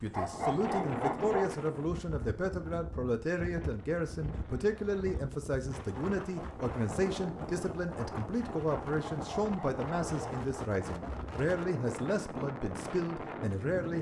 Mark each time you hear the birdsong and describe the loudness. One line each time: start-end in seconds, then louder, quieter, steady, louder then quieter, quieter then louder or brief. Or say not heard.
not heard.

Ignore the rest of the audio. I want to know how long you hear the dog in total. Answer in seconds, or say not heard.
3 s.